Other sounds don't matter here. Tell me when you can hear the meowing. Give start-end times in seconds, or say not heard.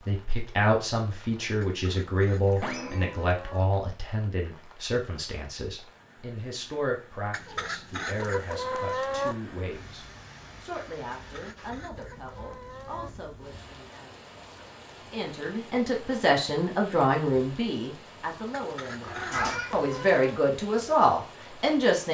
2.6-3.2, 19.0-19.9.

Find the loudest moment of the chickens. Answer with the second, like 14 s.
9 s.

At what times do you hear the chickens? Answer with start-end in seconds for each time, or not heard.
1.6-3.6, 7.3-9.3, 11.2-13.1, 18.5-20.4.